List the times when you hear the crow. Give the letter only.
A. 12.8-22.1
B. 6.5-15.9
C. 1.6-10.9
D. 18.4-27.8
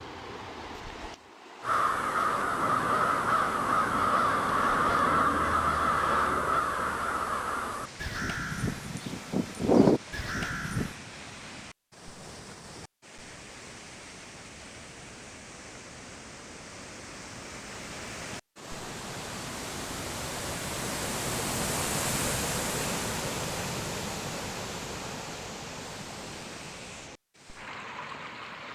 C.